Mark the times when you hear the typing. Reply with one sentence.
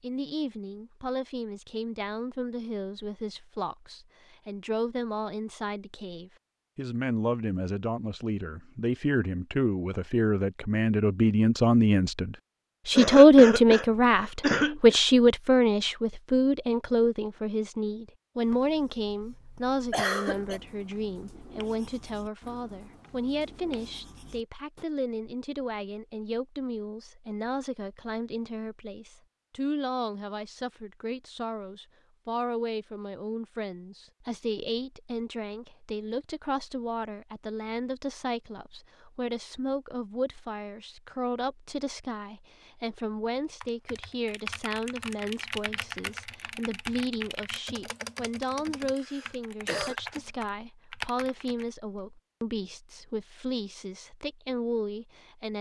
You can hear the typing from 43.6 to 51.7 s.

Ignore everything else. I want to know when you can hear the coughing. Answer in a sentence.
You can hear the coughing from 12.9 to 15.0 s, from 19.9 to 20.6 s and from 48.0 to 50.0 s.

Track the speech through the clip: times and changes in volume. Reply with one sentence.
The speech can be heard from 0.0 to 55.5 s, getting louder then quieter.